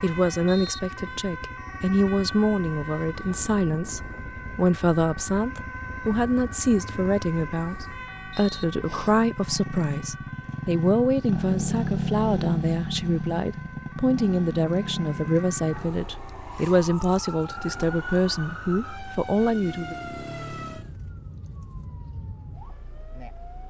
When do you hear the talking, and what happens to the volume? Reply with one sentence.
You can hear the talking from 0.0 to 19.9 s, at a steady volume.